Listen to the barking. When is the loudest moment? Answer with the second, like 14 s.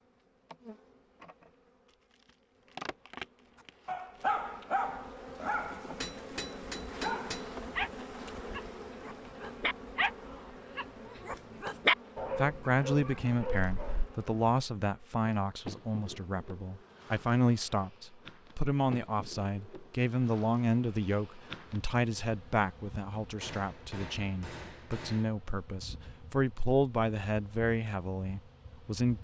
12 s.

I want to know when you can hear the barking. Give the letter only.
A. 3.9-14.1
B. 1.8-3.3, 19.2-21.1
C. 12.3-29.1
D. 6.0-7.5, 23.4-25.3
A.